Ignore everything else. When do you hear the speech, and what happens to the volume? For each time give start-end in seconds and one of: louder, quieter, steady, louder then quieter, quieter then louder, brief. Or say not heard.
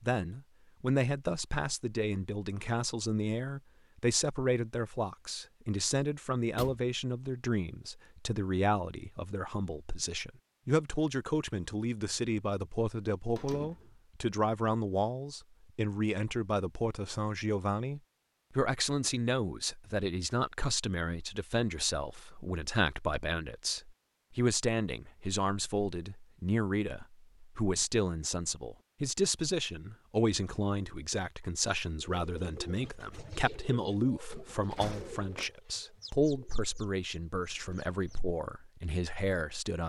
0.0-39.8 steady.